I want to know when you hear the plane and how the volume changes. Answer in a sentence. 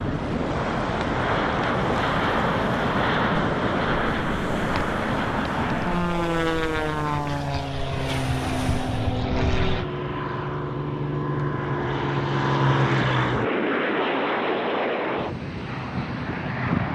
You can hear the plane from 0.0 to 16.9 s, at a steady volume.